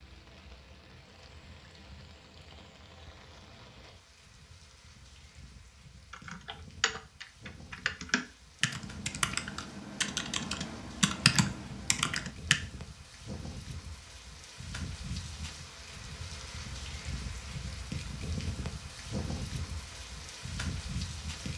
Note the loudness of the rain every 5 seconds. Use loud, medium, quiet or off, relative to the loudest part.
quiet, quiet, medium, loud, loud.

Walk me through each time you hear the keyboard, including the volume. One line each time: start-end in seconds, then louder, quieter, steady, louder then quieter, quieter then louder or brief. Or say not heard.
6.1-12.6 louder.